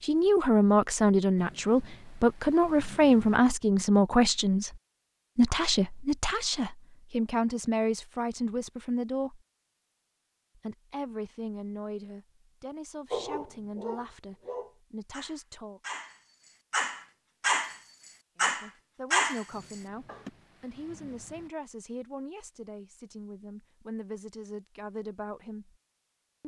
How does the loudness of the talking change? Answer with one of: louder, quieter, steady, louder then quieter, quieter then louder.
quieter.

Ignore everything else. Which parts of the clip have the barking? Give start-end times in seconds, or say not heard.
13.1-20.3.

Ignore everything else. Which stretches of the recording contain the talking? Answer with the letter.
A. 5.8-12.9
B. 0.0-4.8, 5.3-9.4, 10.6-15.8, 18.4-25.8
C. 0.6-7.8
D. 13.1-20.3
B.